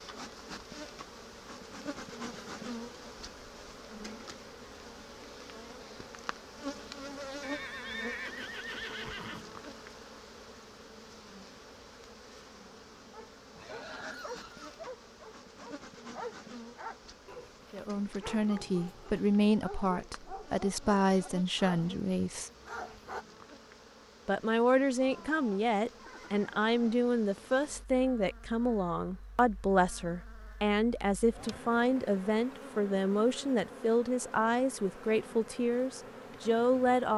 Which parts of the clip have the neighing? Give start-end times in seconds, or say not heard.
7.4-9.4, 13.6-14.8, 25.0-26.9.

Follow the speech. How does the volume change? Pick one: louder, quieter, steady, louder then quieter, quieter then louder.
steady.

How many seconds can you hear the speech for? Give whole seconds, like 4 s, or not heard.
18 s.